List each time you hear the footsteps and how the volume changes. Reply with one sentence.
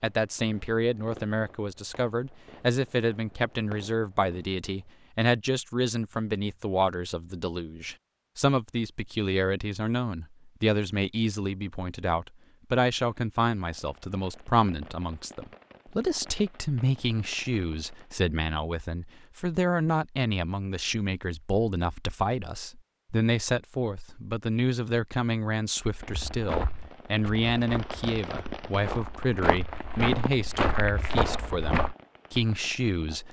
The footsteps can be heard from 26.1 to 31.9 s, getting quieter then louder.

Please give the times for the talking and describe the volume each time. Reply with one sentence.
You can hear the talking from 0.0 to 33.2 s, at a steady volume.